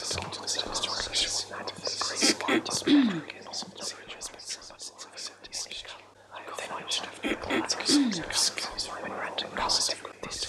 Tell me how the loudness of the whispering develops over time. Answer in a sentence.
The loudness of the whispering goes down, then up.